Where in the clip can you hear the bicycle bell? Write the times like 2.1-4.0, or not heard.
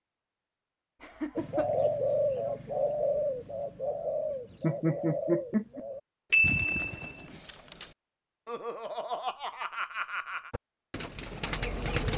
6.3-7.8.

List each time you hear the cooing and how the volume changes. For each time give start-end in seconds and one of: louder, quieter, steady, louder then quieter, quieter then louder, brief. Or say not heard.
1.4-7.4 quieter
10.5-12.1 brief.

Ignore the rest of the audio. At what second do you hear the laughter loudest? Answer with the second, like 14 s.
5 s.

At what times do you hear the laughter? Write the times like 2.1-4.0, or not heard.
1.0-1.6, 4.6-5.8, 8.4-10.5.